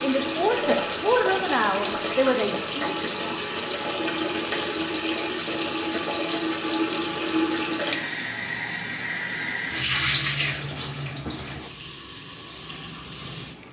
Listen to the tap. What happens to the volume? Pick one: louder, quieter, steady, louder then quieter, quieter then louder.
quieter.